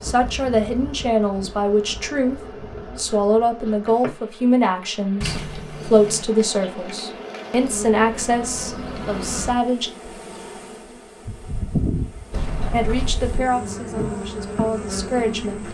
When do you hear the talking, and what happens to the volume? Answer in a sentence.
The talking can be heard from 0.0 to 9.9 s, at a steady volume; and briefly from 12.7 to 15.6 s.